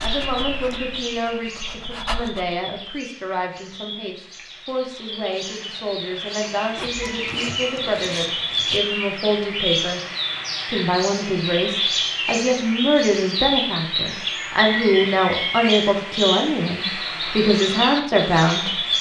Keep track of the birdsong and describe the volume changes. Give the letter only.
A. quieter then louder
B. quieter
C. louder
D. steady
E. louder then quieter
C.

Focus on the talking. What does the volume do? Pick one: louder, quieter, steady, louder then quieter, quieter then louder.
louder.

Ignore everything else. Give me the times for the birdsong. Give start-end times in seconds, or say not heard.
0.0-18.9.